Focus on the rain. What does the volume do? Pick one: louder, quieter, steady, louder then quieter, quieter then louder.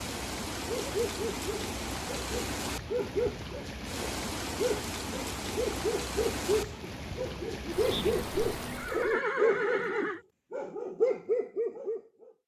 steady.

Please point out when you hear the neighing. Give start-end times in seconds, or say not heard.
7.9-10.2.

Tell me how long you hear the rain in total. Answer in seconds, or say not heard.
9 s.